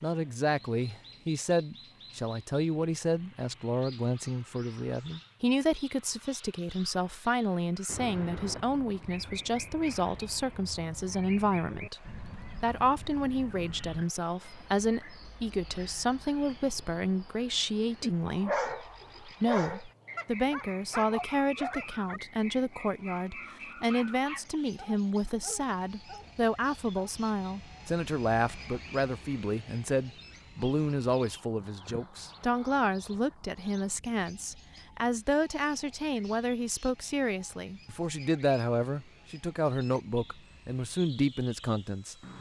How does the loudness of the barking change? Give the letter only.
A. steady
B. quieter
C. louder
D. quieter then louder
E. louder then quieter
B.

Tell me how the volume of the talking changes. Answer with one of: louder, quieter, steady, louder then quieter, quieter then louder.
steady.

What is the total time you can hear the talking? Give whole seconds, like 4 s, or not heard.
42 s.